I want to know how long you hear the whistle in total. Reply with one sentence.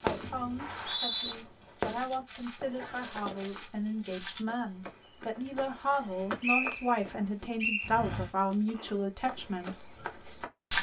The whistle can be heard for 2 seconds in total.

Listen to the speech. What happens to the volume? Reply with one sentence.
The volume of the speech goes up.